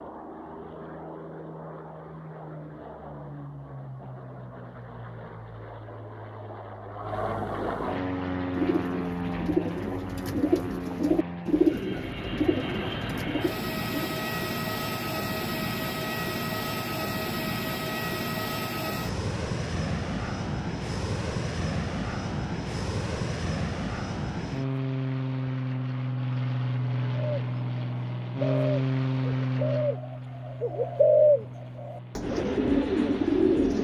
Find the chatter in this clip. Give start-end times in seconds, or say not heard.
not heard.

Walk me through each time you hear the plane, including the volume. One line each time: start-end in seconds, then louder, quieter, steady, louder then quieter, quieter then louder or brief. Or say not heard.
0.0-33.7 louder.